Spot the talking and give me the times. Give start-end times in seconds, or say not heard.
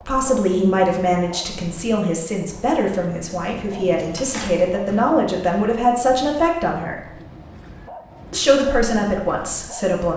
0.0-7.0, 8.3-10.1.